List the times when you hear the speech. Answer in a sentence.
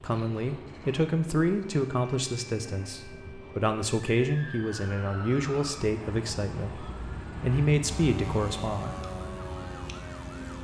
The speech can be heard from 0.0 to 9.0 s.